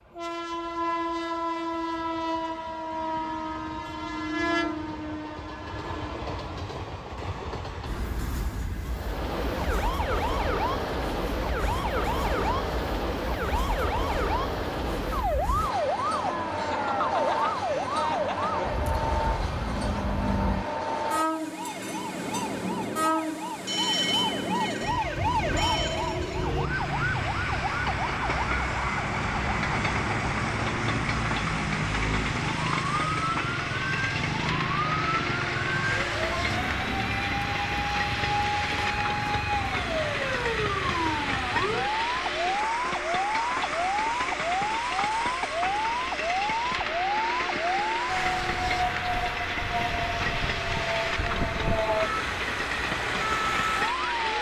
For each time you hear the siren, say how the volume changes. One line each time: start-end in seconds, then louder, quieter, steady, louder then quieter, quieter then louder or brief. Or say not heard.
8.8-54.3 steady.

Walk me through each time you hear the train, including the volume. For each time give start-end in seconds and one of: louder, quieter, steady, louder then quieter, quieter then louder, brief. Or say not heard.
0.1-54.3 steady.